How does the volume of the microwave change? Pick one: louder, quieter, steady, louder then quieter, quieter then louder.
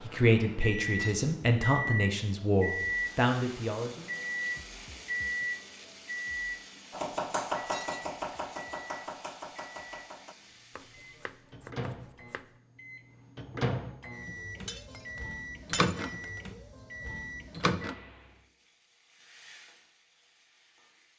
quieter then louder.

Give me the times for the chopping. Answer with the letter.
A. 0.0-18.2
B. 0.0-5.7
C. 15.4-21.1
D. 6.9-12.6
D.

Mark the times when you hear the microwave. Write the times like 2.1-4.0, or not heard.
0.0-18.2.